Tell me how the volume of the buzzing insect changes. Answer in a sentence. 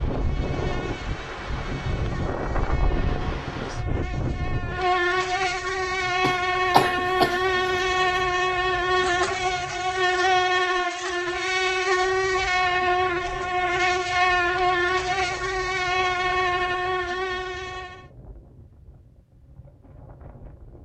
The loudness of the buzzing insect goes up.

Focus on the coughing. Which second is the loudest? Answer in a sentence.
The loudest moment of the coughing is at 7 seconds.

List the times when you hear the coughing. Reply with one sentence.
You can hear the coughing from 6.2 to 8.2 s.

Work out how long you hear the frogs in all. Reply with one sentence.
You can't hear the frogs here.